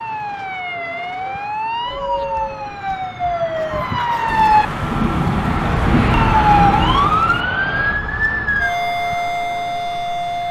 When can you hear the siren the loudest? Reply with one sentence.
The loudest moment of the siren is at 7 seconds.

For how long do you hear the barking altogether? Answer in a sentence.
The barking can't be heard in this clip.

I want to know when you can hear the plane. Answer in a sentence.
The plane can be heard from 0.0 to 10.4 s.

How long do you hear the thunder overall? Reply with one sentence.
The thunder can be heard for 3 seconds in total.